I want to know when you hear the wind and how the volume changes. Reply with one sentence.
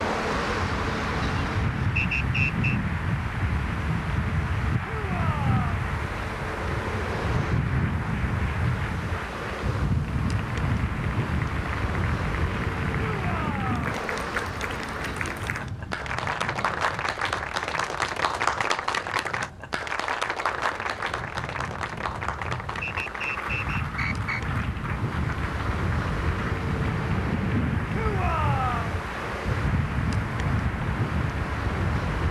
You can hear the wind from 0.0 to 32.2 s, getting quieter then louder.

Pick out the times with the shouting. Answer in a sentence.
The shouting can be heard from 4.8 to 5.8 s, from 12.9 to 13.9 s and from 27.9 to 29.0 s.